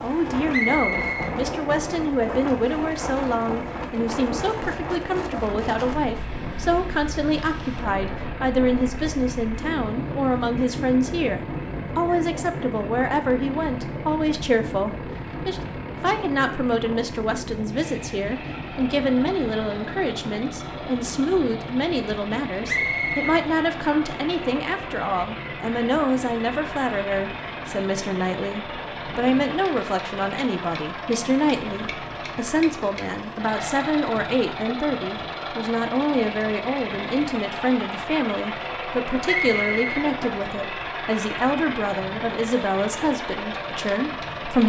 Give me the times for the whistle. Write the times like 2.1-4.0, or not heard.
0.5-1.4, 22.6-23.4, 39.2-40.1.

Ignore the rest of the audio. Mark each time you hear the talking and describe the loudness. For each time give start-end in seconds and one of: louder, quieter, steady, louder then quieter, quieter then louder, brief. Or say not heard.
0.0-44.6 steady.